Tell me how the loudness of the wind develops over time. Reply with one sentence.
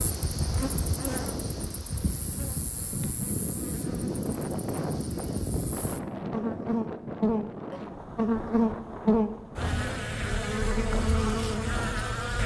The volume of the wind goes up, then down.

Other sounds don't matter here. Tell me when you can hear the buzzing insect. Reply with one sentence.
The buzzing insect can be heard from 0.0 to 12.4 s.